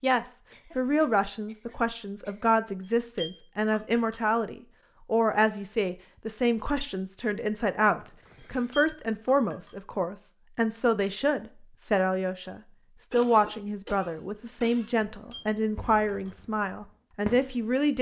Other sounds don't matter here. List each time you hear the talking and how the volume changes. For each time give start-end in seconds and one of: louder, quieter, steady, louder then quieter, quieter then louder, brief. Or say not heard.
0.0-17.9 steady.